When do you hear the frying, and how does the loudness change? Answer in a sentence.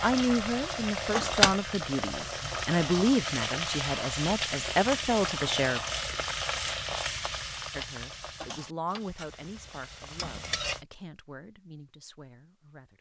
The frying can be heard from 0.0 to 10.8 s, getting quieter.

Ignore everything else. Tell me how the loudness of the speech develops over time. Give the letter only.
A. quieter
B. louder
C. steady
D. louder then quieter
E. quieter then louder
A.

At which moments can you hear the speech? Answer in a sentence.
You can hear the speech from 0.0 to 5.8 s and from 7.7 to 12.9 s.